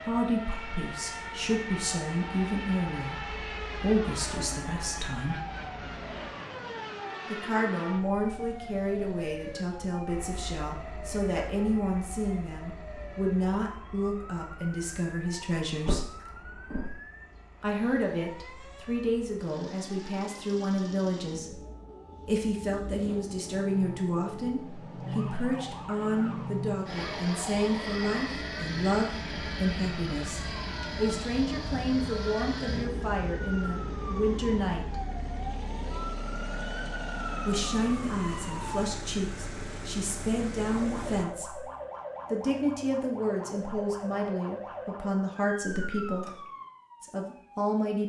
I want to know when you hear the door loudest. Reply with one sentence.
The loudest moment of the door is at 16 seconds.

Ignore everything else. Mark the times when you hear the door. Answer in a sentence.
You can hear the door from 15.8 to 16.9 s and from 45.6 to 46.4 s.